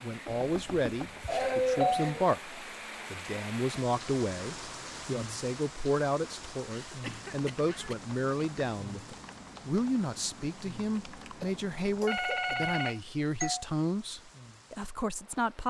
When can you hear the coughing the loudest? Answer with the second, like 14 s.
2 s.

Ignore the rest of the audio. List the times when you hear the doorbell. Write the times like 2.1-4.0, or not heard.
0.2-1.9, 12.1-13.7.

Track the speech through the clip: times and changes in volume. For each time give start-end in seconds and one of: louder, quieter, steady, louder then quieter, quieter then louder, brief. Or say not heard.
0.0-15.6 steady.